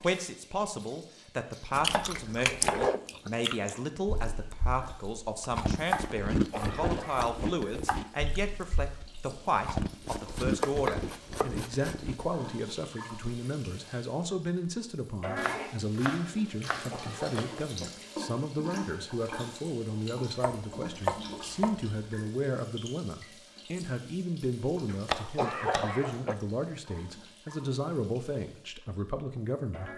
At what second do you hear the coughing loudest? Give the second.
26 s.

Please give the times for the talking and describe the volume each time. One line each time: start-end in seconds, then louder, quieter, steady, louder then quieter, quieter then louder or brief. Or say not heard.
0.0-29.9 steady.